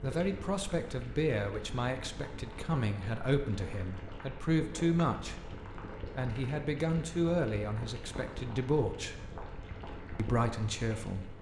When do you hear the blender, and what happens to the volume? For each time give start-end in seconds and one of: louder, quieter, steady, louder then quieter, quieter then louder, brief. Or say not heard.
not heard.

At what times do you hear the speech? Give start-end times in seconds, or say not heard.
0.0-5.4, 6.2-9.2, 10.2-11.3.